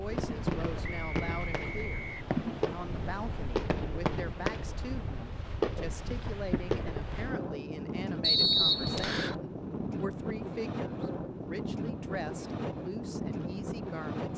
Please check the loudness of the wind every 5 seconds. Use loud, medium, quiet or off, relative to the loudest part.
medium, loud, loud.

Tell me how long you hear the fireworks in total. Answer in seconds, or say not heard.
7 s.